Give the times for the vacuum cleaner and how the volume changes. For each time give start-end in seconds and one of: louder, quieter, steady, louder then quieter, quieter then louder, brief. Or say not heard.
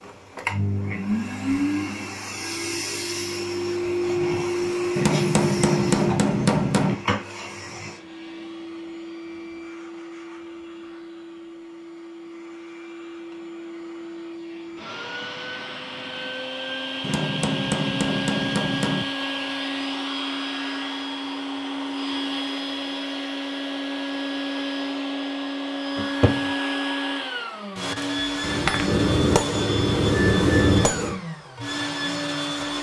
0.0-32.7 quieter then louder.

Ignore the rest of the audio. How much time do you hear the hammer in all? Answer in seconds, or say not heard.
7 s.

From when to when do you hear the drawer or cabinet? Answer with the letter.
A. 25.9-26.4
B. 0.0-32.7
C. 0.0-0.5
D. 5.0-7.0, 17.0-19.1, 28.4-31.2
A.